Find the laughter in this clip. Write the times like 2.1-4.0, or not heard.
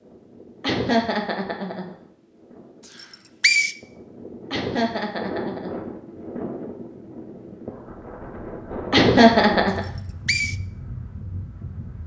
0.6-1.9, 4.5-6.2, 8.9-9.8.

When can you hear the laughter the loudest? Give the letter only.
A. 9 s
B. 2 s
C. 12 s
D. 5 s
A.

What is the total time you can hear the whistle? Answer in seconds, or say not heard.
2 s.